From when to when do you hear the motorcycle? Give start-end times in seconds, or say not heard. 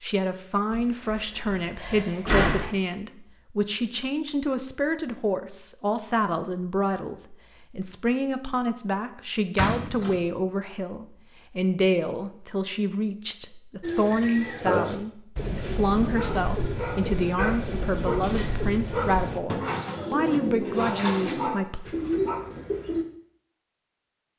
not heard.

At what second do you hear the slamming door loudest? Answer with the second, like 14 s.
2 s.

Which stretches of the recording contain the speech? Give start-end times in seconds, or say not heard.
0.0-21.9.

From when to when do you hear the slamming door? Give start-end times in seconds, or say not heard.
0.7-2.7, 9.6-10.2, 18.1-18.6.